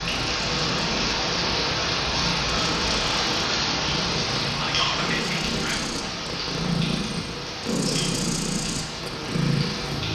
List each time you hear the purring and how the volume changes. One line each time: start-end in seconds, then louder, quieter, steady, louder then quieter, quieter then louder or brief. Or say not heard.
0.0-10.1 louder.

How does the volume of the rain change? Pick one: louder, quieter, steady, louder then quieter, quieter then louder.
quieter.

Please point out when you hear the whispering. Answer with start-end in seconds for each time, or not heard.
4.5-6.0.